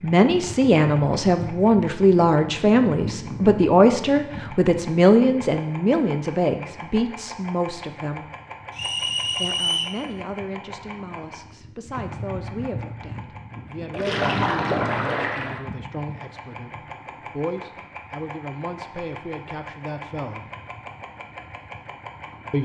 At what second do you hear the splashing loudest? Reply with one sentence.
The volume of the splashing peaks at 14 seconds.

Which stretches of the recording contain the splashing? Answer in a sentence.
The splashing can be heard from 13.9 to 15.6 s.